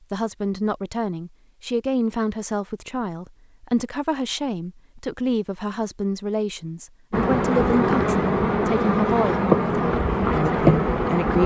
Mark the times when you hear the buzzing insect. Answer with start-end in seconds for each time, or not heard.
7.1-11.4.